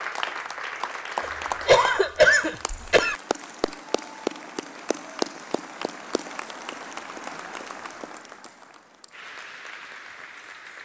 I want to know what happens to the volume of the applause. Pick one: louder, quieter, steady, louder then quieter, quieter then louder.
quieter.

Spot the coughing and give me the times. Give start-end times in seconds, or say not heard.
1.2-3.1.